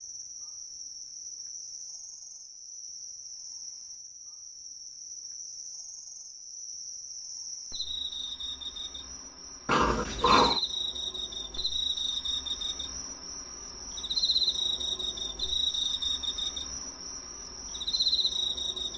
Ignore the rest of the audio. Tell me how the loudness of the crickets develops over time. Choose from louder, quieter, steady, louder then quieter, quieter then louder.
louder.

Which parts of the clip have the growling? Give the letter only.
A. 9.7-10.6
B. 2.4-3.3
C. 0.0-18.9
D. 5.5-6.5
A.